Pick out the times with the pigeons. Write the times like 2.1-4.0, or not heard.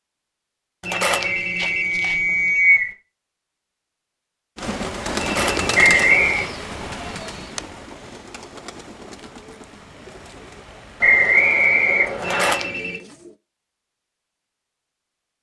4.5-13.4.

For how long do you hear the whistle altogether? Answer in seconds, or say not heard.
4 s.